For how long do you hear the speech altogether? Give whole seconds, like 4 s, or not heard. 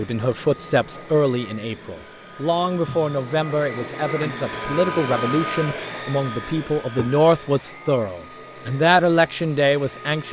10 s.